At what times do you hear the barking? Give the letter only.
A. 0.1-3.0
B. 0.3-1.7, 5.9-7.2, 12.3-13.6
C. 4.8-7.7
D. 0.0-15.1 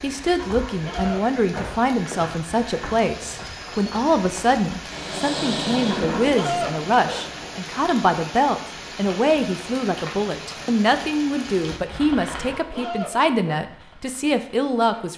B.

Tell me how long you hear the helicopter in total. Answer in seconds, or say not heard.
3 s.